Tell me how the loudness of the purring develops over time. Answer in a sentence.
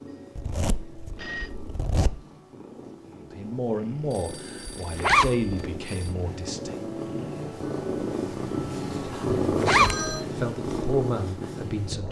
The loudness of the purring goes up.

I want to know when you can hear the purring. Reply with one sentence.
The purring can be heard from 0.0 to 12.0 s.